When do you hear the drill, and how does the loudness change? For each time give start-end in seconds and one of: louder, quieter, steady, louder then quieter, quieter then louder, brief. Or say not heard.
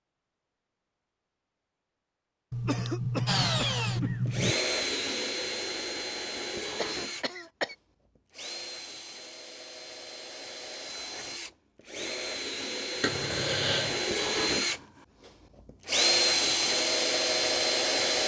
3.2-18.2 quieter then louder.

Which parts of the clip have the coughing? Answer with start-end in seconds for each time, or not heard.
2.5-4.5, 6.8-7.8, 13.0-14.1.